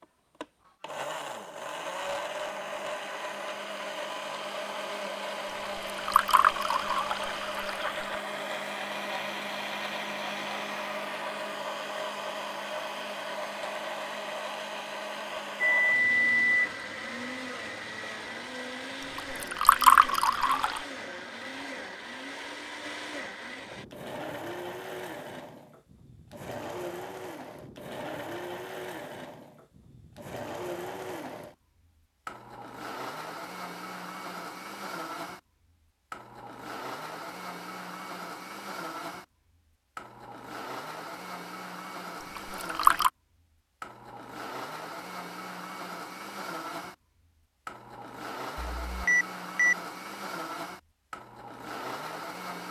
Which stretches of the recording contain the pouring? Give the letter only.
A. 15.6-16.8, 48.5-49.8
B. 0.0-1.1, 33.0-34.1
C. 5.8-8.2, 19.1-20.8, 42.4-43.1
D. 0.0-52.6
C.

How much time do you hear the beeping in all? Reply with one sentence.
The beeping can be heard for 2 seconds in total.